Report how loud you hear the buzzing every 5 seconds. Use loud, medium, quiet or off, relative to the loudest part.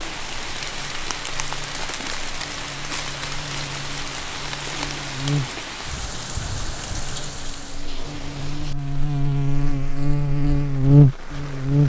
quiet, medium, loud.